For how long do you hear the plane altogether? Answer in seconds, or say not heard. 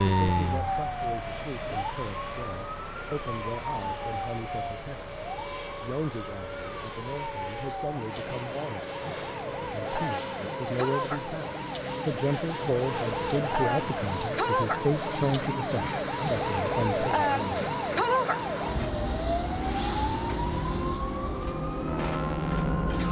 23 s.